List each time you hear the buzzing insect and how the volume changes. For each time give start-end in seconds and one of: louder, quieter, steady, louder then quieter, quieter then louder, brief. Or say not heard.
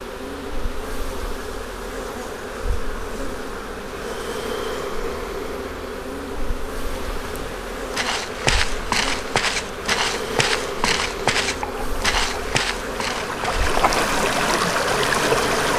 0.0-15.7 steady.